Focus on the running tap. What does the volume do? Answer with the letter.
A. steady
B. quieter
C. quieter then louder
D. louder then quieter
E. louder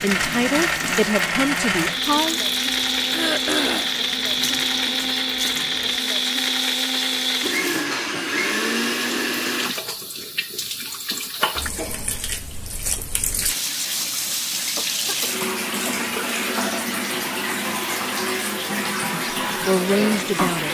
E.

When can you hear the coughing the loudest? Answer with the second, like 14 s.
4 s.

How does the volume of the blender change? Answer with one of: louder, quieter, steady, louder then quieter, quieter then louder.
steady.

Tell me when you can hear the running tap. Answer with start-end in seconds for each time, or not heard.
0.0-20.6.